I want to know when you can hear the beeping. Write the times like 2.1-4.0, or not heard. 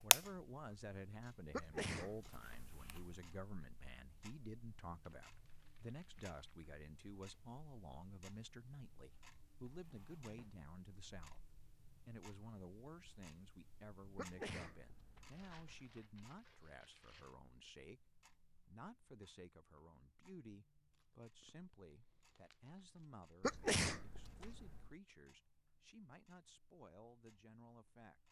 not heard.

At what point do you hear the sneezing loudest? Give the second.
24 s.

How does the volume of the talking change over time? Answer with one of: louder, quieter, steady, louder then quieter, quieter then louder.
quieter.